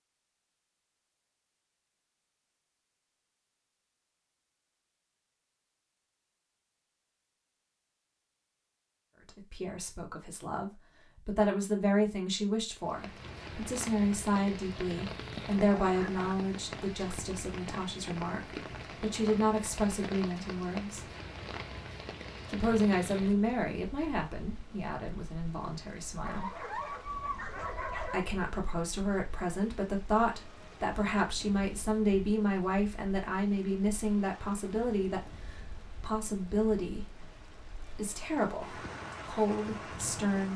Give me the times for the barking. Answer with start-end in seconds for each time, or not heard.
15.6-16.4, 26.2-28.2.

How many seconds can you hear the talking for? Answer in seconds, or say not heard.
27 s.